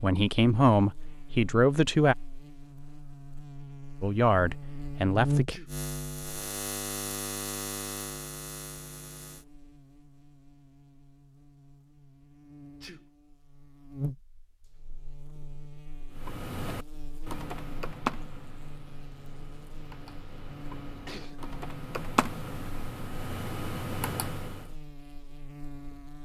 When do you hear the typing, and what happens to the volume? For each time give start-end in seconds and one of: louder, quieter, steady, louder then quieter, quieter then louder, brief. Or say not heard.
16.1-24.8 quieter then louder.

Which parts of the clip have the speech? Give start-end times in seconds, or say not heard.
0.0-2.1, 4.0-5.5.